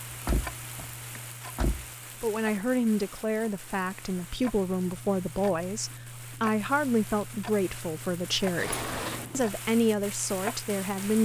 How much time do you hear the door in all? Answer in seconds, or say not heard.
3 s.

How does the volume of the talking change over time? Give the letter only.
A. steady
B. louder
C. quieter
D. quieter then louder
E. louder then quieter
A.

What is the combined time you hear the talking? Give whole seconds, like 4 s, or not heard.
9 s.